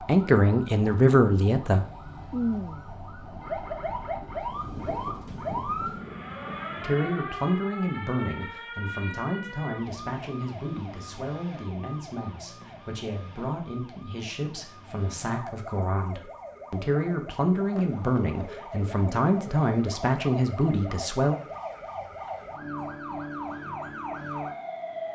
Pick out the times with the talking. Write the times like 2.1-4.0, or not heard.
0.1-1.9, 6.8-21.4.